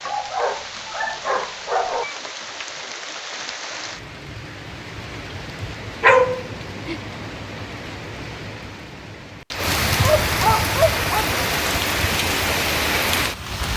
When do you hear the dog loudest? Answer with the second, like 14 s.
6 s.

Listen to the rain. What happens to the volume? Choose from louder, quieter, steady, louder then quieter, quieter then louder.
louder.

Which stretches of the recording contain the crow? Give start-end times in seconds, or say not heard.
not heard.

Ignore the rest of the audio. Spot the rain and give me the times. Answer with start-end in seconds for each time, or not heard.
0.0-13.7.